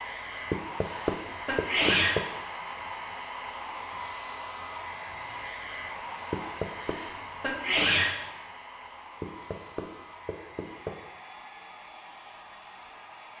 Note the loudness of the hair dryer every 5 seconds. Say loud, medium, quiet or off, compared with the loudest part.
loud, loud, medium.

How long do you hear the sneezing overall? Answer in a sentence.
You can hear the sneezing for 3 seconds altogether.